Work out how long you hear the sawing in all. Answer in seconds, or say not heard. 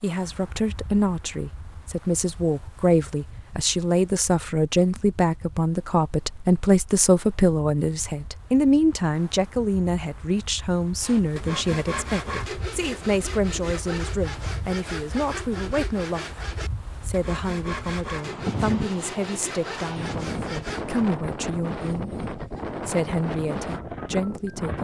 10 s.